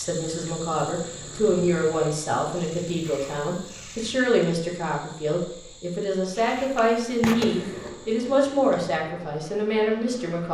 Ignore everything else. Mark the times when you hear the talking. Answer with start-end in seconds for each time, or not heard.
0.0-10.4.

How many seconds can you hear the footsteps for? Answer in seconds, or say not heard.
not heard.